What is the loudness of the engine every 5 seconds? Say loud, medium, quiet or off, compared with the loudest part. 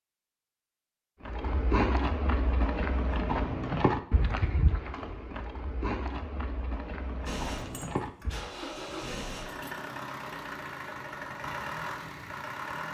off, loud, loud.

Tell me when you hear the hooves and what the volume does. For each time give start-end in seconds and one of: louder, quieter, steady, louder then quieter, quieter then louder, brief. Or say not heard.
1.2-8.5 quieter.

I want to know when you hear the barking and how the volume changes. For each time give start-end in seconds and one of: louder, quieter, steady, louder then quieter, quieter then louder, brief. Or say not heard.
not heard.